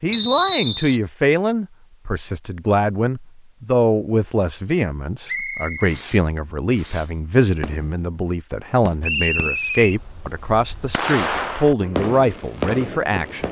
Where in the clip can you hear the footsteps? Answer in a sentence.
You can't hear the footsteps here.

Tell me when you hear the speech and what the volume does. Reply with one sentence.
You can hear the speech from 0.0 to 13.4 s, at a steady volume.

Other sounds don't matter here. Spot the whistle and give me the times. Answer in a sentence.
You can hear the whistle from 0.1 to 0.9 s, from 5.2 to 6.0 s and from 9.0 to 9.9 s.